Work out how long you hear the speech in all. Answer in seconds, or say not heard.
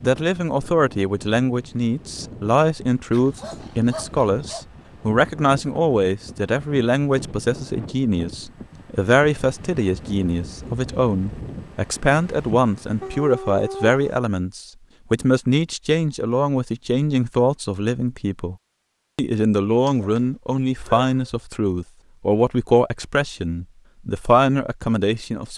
25 s.